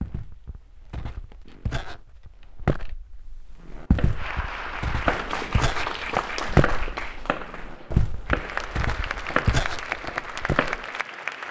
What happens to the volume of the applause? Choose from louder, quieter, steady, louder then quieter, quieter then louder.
quieter then louder.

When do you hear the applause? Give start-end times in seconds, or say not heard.
4.2-11.4.